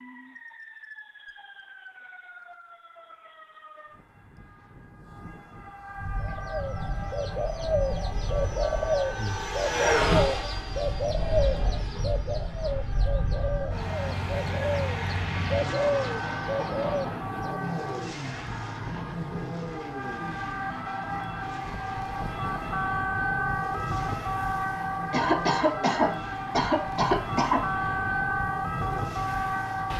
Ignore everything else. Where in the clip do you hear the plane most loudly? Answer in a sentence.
The volume of the plane peaks at 10 seconds.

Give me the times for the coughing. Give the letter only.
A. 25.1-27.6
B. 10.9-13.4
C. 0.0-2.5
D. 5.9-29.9
A.